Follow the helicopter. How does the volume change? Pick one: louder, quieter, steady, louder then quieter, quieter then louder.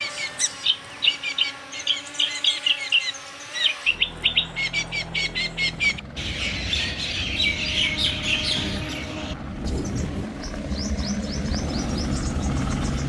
louder.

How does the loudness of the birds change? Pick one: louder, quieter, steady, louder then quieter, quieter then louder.
quieter.